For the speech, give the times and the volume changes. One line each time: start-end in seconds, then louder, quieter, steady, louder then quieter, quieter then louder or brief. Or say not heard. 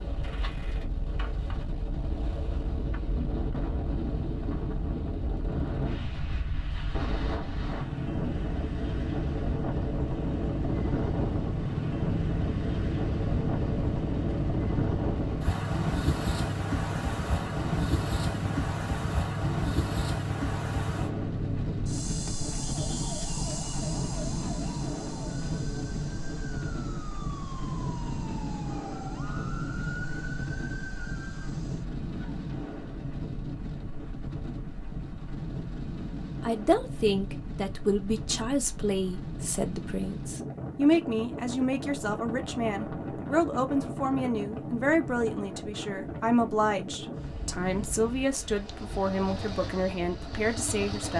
36.4-51.1 steady.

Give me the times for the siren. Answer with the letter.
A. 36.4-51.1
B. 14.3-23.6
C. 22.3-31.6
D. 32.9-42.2
C.